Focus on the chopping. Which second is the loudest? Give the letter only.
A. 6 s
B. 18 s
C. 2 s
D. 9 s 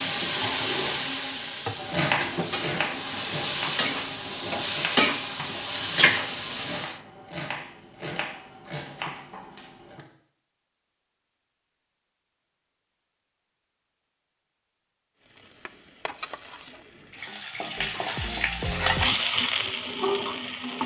C.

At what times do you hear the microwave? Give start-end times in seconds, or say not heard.
not heard.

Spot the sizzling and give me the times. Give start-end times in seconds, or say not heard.
0.0-7.0, 15.2-20.8.